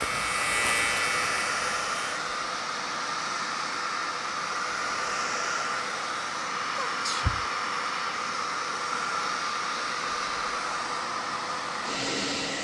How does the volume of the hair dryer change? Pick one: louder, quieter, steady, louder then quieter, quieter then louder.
steady.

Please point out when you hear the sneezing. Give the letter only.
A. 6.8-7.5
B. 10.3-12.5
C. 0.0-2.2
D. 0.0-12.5
A.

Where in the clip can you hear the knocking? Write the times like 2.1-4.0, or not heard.
not heard.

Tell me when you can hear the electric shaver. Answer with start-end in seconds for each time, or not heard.
0.0-2.2.